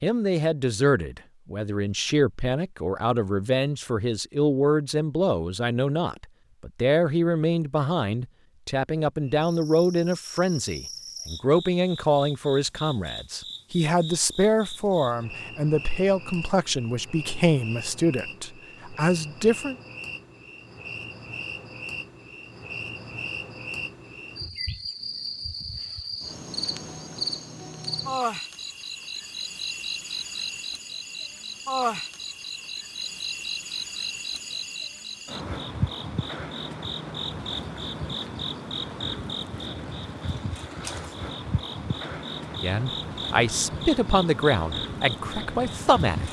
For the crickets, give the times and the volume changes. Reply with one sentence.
You can hear the crickets from 9.2 to 46.2 s, getting louder.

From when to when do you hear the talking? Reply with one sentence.
The talking can be heard from 0.0 to 19.8 s and from 42.5 to 46.2 s.